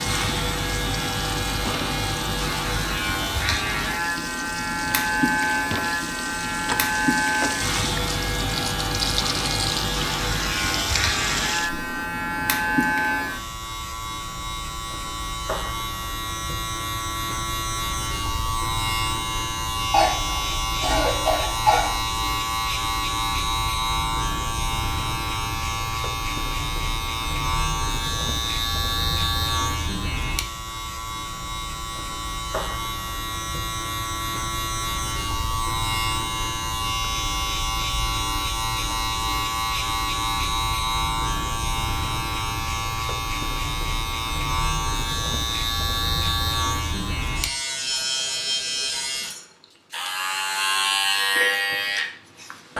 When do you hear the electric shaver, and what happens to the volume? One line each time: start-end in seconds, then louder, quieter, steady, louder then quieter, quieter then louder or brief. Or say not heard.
0.0-52.7 steady.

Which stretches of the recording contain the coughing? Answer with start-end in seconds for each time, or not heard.
19.9-21.9.